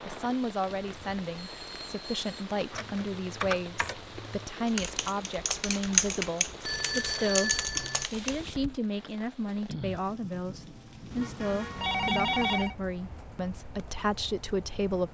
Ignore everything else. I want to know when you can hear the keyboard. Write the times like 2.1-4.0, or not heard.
2.7-8.4.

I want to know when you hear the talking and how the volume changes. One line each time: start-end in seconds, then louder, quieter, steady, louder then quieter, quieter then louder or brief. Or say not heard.
0.1-7.5 steady
8.1-15.0 steady.